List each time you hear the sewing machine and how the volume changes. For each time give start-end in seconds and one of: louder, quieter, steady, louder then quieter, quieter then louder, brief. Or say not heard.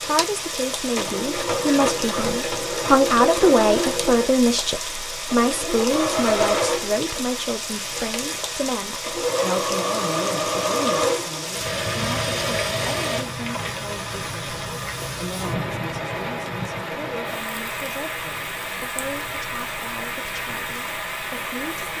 0.0-13.3 steady.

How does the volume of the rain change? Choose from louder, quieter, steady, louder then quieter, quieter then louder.
steady.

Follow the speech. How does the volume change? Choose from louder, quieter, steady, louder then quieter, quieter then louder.
quieter.